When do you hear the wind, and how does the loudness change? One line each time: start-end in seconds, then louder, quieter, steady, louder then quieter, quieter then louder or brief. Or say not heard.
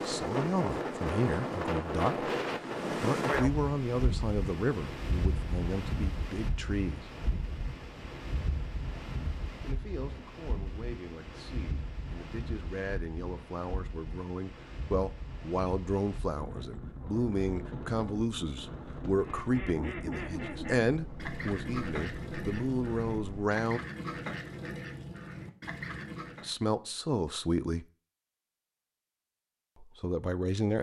0.0-23.5 quieter.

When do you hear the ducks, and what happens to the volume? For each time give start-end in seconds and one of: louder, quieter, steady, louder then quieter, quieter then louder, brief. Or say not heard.
19.1-26.6 steady.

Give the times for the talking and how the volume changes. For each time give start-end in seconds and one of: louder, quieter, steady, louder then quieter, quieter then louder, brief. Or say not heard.
0.0-2.3 brief
3.0-7.1 quieter
9.6-23.8 louder
26.4-27.9 brief
29.8-30.7 brief.